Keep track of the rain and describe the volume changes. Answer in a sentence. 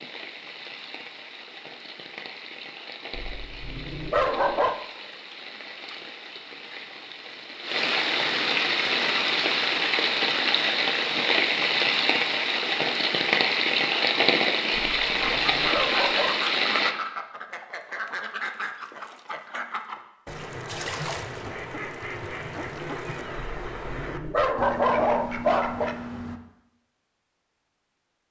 The loudness of the rain goes up.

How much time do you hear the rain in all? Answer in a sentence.
The rain can be heard for 17 seconds in total.